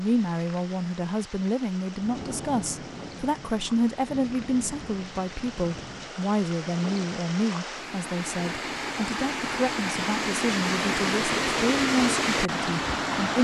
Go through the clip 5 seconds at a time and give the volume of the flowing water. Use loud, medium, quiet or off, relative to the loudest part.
quiet, medium, loud.